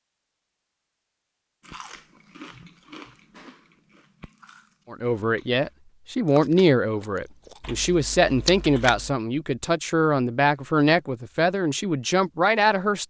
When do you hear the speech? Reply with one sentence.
You can hear the speech from 4.9 to 13.0 s.